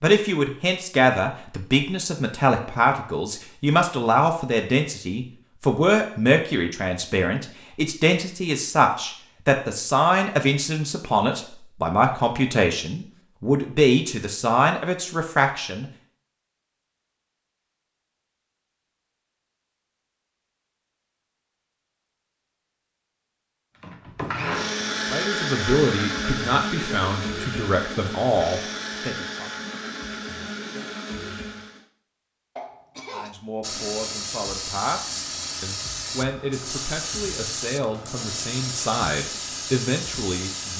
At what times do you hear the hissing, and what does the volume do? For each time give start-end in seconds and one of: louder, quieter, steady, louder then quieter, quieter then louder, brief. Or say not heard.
33.6-40.7 steady.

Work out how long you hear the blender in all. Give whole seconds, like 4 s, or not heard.
8 s.